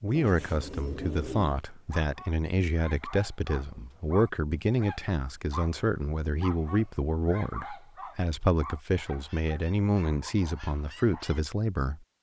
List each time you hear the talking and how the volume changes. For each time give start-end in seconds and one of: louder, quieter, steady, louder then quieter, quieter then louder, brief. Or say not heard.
0.0-12.0 steady.